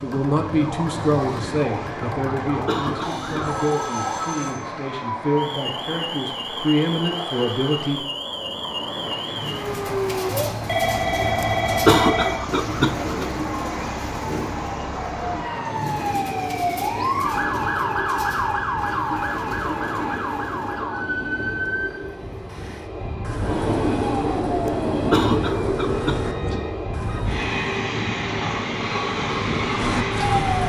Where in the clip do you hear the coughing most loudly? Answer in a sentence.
The loudest moment of the coughing is at 12 seconds.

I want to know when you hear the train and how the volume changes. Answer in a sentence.
You can hear the train from 0.0 to 30.6 s, getting louder.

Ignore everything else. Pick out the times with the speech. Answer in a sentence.
The speech can be heard from 0.0 to 8.1 s.